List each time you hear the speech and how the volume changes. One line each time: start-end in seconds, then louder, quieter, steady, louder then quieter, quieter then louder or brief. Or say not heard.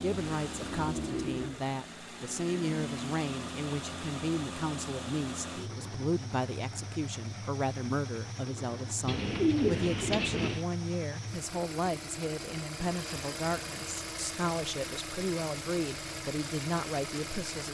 0.0-17.6 steady.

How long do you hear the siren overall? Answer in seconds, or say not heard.
not heard.